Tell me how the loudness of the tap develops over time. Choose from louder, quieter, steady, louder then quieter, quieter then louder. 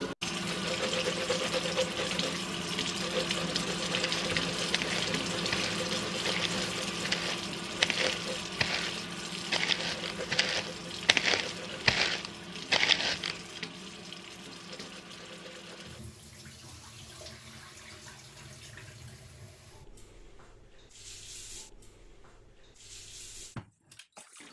quieter.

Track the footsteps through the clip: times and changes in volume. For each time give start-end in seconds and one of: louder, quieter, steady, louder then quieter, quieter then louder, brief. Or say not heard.
3.9-13.4 louder.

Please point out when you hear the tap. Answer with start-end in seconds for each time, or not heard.
0.0-24.4.